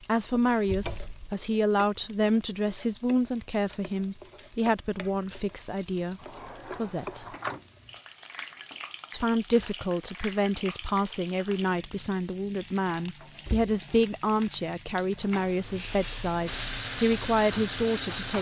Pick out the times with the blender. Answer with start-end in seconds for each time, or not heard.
16.4-18.3.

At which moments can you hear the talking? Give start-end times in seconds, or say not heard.
0.1-7.2, 9.1-18.3.